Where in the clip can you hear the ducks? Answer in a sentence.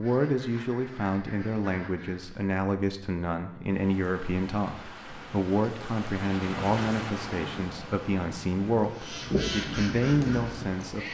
You can hear the ducks from 0.0 to 2.4 s and from 8.9 to 11.0 s.